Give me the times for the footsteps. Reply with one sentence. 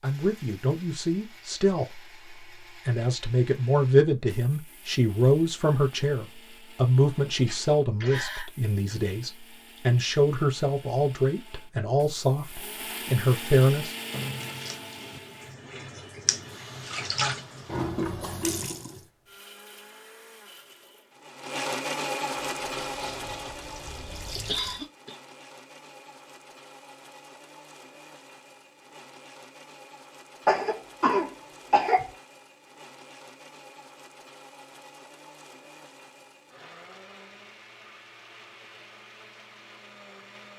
You can't hear the footsteps here.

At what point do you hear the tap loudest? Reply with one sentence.
The loudest moment of the tap is at 18 seconds.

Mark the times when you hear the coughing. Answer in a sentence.
You can hear the coughing from 7.5 to 8.4 s, from 24.4 to 25.1 s and from 30.4 to 32.1 s.